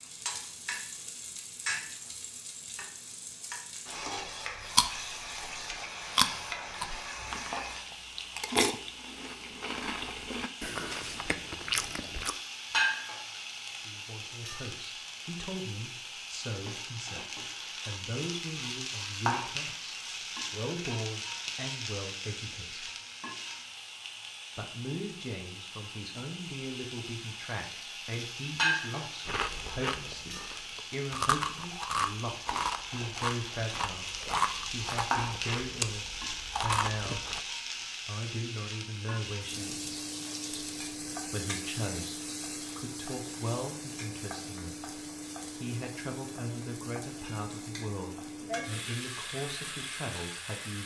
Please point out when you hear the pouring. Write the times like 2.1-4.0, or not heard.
not heard.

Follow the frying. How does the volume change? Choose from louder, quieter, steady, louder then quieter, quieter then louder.
steady.